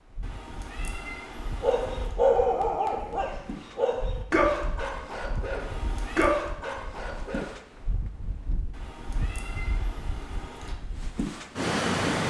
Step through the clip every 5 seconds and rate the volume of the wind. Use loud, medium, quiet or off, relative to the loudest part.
quiet, quiet, loud.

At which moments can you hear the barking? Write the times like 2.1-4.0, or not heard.
1.6-7.5.